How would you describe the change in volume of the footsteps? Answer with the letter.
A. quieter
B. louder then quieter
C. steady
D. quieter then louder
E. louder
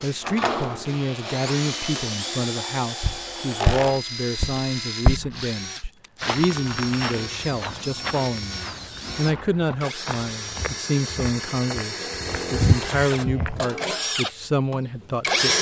D.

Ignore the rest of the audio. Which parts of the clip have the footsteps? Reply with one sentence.
You can hear the footsteps from 3.0 to 13.7 s.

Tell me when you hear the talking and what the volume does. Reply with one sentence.
You can hear the talking from 0.0 to 15.5 s, at a steady volume.